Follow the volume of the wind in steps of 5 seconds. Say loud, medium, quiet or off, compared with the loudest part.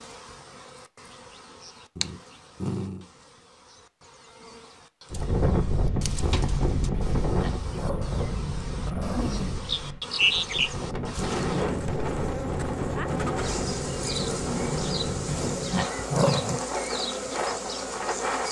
off, loud, loud, loud.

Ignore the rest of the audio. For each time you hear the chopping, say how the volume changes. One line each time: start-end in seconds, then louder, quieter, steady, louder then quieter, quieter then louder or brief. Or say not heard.
not heard.